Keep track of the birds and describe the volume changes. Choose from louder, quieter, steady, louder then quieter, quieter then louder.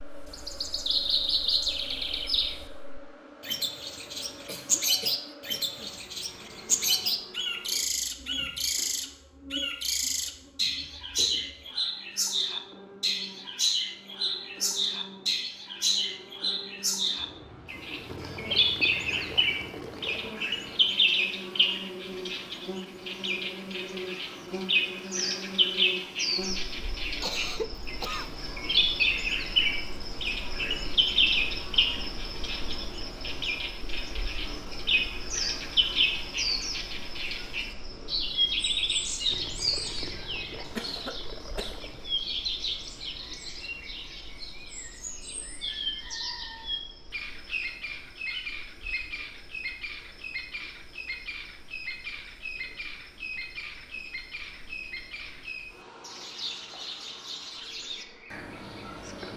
quieter.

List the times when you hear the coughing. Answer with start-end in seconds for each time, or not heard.
4.5-6.0, 27.2-28.3, 40.6-42.0.